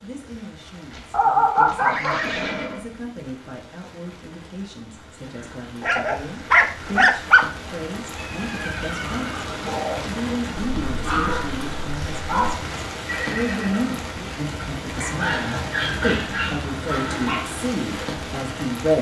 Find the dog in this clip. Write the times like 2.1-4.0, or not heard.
1.1-2.2, 5.8-7.5, 10.6-12.6, 15.0-17.4.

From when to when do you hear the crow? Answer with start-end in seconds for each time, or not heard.
not heard.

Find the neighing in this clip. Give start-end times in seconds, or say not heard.
0.9-2.9, 8.2-10.1, 13.1-14.1.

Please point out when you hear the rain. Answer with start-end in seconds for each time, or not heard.
0.0-18.9.